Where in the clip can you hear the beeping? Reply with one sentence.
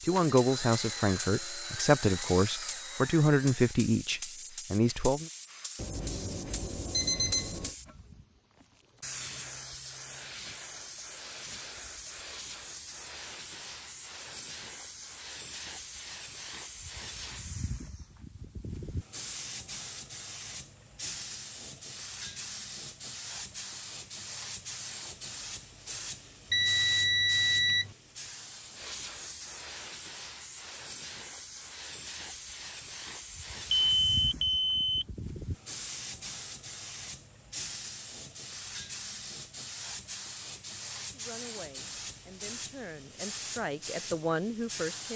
You can hear the beeping from 5.8 to 7.7 s, from 26.5 to 27.9 s and from 33.7 to 35.0 s.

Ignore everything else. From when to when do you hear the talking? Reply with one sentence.
The talking can be heard from 0.0 to 5.3 s and from 41.1 to 45.1 s.